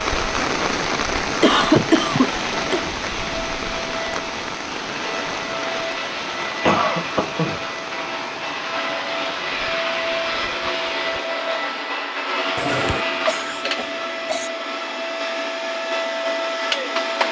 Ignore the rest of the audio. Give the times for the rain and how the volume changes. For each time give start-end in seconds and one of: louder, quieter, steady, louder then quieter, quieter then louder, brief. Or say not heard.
0.0-11.8 quieter.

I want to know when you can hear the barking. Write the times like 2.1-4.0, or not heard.
not heard.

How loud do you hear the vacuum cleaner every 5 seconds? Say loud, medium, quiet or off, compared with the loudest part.
medium, loud, loud, loud.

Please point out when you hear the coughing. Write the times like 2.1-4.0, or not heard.
1.4-2.9, 6.7-7.6, 12.6-14.5.